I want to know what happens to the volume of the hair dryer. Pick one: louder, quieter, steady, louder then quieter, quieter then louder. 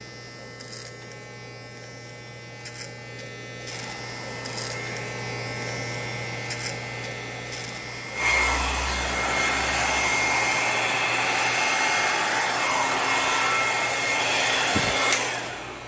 louder.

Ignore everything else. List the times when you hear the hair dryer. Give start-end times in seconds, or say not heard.
3.7-15.8.